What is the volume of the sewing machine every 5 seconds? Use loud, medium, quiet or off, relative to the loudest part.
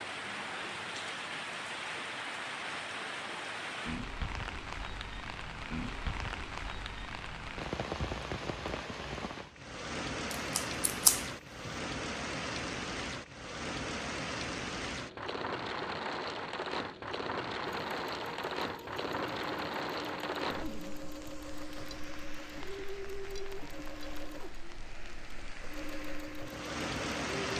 off, off, off, loud, loud, loud.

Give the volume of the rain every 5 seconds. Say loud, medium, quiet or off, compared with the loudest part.
loud, loud, loud, loud, medium, loud.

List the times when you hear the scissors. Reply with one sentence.
You can hear the scissors from 10.3 to 11.8 s.